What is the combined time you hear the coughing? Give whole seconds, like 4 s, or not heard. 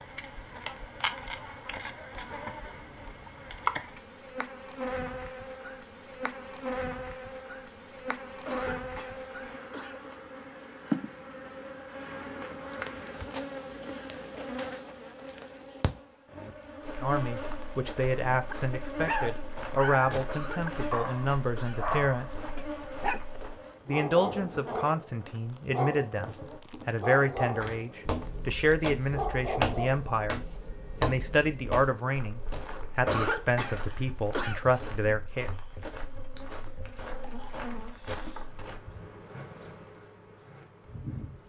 5 s.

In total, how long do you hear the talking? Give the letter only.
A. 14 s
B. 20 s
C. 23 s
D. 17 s
D.